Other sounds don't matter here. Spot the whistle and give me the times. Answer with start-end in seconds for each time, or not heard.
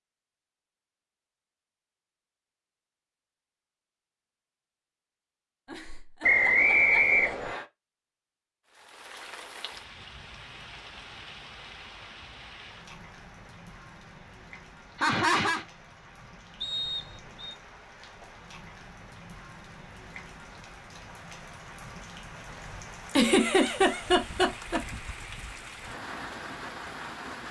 6.2-7.7, 16.6-17.6.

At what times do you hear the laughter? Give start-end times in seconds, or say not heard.
5.7-7.5, 14.9-15.7, 23.1-24.8.